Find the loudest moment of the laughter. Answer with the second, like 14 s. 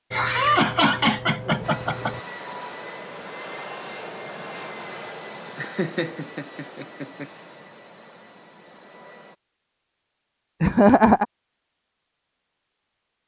11 s.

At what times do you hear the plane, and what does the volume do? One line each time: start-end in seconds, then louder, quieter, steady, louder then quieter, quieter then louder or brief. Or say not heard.
1.6-9.3 quieter.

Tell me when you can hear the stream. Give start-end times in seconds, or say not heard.
not heard.